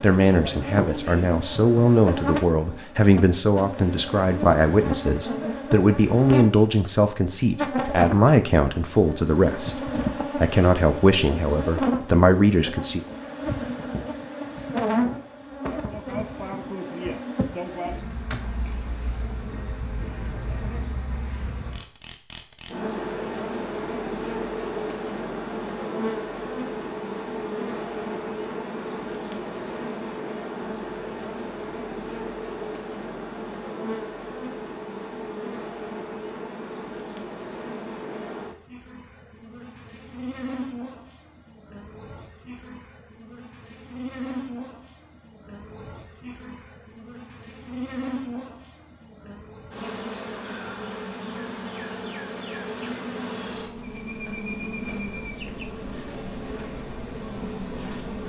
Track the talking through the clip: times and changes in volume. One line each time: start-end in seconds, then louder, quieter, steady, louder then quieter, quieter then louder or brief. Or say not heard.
0.0-13.0 steady.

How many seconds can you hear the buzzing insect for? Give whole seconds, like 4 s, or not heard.
58 s.